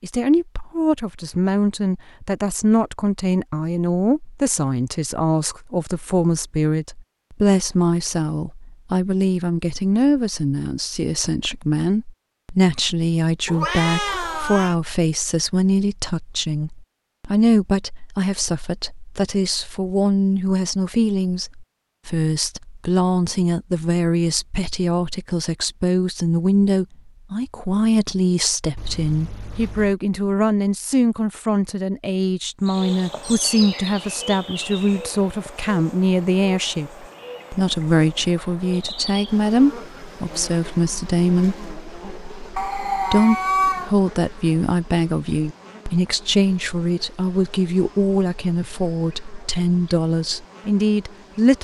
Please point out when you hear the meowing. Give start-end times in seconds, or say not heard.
13.4-14.8, 28.8-29.9, 42.5-44.0.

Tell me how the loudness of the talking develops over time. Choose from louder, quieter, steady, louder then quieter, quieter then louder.
steady.